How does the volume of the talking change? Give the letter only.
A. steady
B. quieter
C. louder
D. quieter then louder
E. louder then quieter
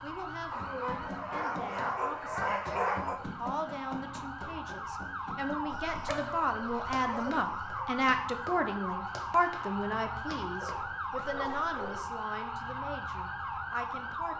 E.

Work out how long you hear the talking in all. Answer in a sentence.
You can hear the talking for 14 seconds altogether.